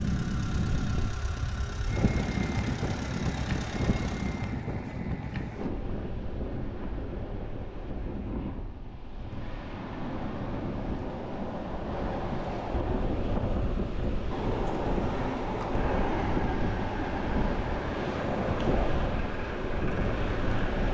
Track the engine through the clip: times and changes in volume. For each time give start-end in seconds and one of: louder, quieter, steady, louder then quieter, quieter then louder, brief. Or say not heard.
0.0-4.6 steady
14.8-20.8 steady.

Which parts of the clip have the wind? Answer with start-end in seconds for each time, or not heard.
0.0-20.8.